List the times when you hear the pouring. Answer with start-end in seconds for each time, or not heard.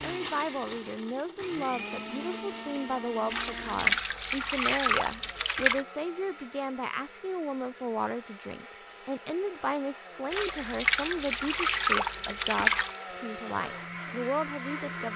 3.3-5.8, 10.3-12.9.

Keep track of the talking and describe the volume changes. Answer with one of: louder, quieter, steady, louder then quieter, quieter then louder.
steady.